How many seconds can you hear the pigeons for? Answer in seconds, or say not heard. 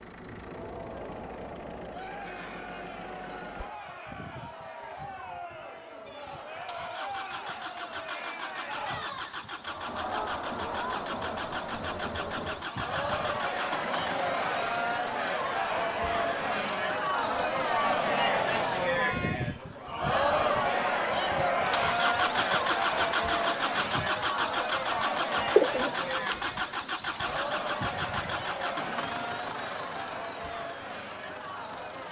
2 s.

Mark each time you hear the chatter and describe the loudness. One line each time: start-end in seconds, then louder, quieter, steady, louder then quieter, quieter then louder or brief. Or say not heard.
0.0-32.0 louder then quieter.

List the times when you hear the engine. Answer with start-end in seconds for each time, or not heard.
0.0-32.0.